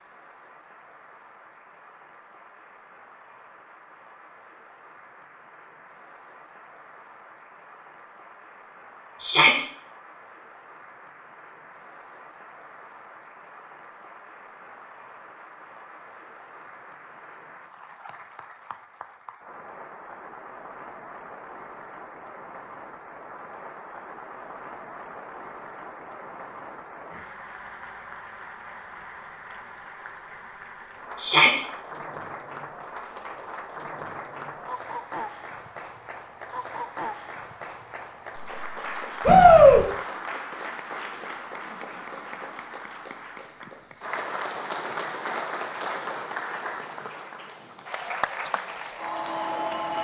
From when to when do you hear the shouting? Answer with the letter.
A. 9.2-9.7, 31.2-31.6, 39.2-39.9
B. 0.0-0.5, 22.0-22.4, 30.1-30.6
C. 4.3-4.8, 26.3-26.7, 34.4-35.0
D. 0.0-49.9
A.